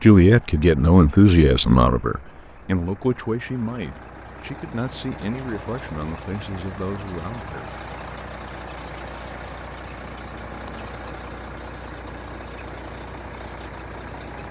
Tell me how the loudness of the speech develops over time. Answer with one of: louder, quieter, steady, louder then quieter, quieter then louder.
quieter.